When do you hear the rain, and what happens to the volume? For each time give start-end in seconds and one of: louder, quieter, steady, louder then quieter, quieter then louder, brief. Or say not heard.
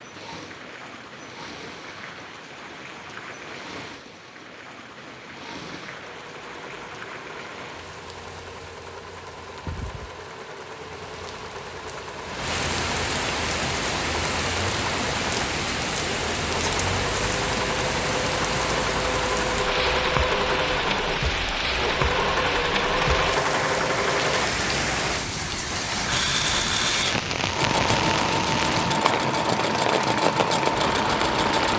0.0-31.7 louder.